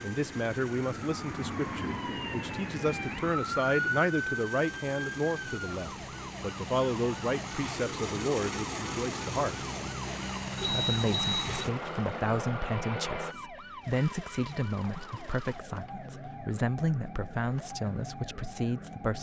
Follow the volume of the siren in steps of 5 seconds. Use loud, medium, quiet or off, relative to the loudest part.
loud, medium, medium, medium.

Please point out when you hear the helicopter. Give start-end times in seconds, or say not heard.
0.0-13.3.